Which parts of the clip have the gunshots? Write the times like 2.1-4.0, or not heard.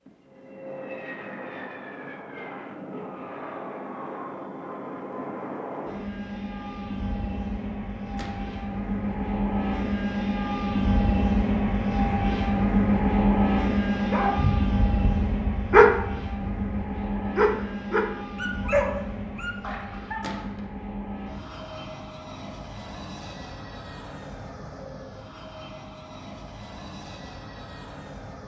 8.2-8.6, 20.2-20.6.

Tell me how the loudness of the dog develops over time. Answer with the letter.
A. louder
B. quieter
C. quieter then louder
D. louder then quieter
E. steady
D.